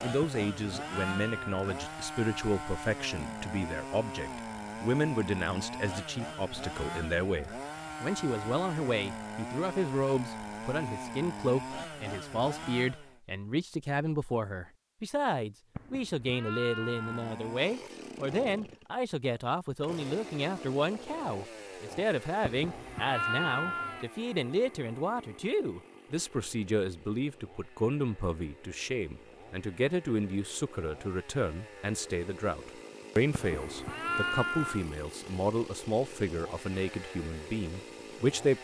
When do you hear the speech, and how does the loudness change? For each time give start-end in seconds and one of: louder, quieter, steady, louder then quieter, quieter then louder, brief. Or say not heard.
0.0-38.5 steady.